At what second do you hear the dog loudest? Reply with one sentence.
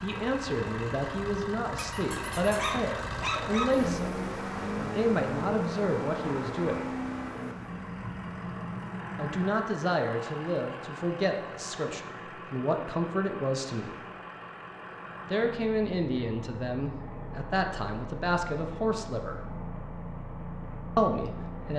The volume of the dog peaks at 3 seconds.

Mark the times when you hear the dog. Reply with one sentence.
The dog can be heard from 1.8 to 3.6 s.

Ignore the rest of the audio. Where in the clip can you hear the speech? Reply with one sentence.
The speech can be heard from 0.0 to 6.9 s, from 9.2 to 14.0 s, from 15.3 to 19.4 s and from 20.9 to 21.7 s.